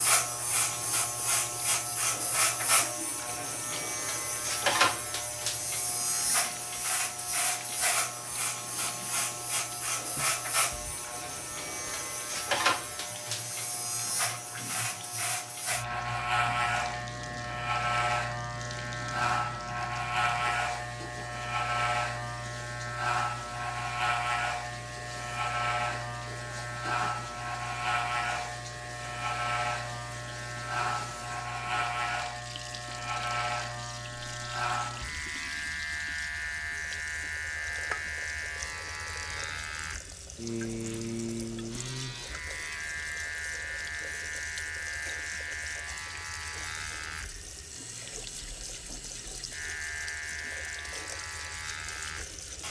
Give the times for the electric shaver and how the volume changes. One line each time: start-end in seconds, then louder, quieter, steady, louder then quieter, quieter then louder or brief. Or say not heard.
0.0-52.6 quieter.